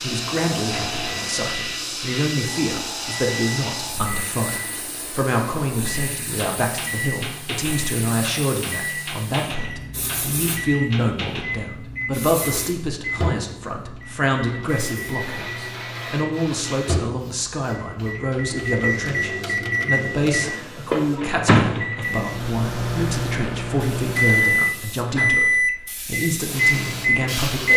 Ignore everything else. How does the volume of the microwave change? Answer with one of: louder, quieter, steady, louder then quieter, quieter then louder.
louder.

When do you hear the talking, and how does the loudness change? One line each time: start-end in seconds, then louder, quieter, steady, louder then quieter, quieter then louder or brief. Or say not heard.
0.0-27.7 steady.